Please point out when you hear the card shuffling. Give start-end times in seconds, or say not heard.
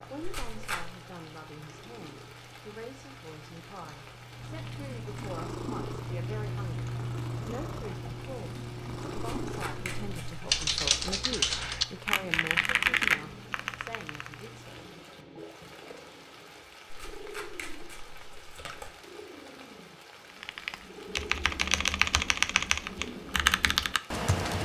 0.2-0.9, 9.2-11.2, 16.9-18.9.